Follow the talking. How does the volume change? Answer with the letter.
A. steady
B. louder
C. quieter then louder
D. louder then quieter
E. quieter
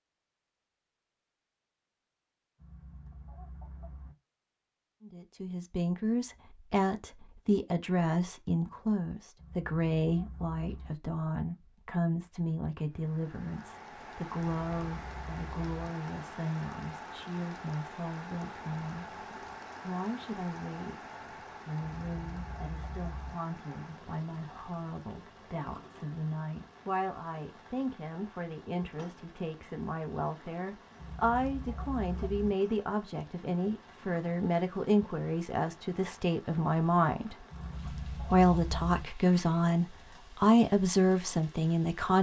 C.